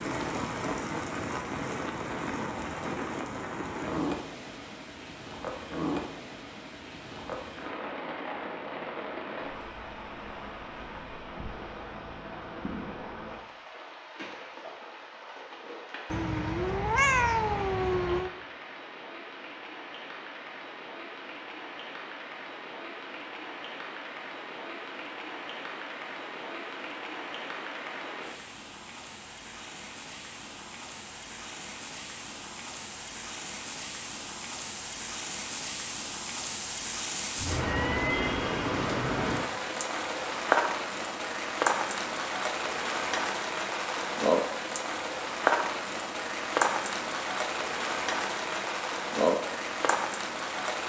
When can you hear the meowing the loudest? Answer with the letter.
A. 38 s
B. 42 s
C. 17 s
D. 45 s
C.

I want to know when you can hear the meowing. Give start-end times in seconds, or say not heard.
16.1-18.3, 37.4-38.4.